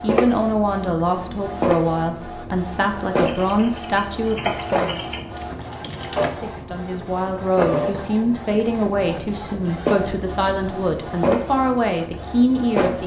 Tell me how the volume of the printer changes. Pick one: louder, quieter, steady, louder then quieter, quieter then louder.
steady.